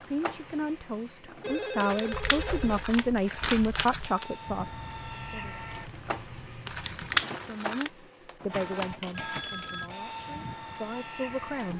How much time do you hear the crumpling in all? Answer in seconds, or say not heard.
4 s.